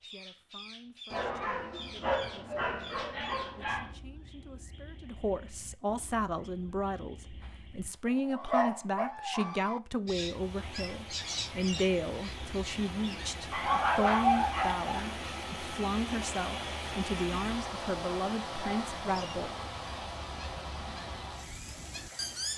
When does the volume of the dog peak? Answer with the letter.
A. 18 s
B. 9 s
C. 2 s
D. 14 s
D.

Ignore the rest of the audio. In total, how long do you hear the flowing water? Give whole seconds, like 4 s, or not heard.
12 s.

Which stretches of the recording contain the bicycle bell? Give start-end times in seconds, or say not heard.
not heard.